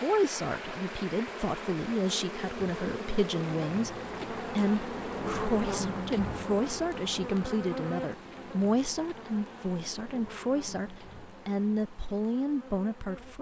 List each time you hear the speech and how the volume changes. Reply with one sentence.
The speech can be heard from 0.0 to 13.3 s, at a steady volume.